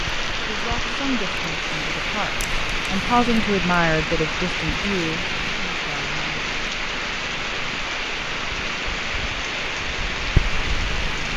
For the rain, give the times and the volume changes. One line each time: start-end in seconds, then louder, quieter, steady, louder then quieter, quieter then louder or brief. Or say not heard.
0.0-11.3 steady.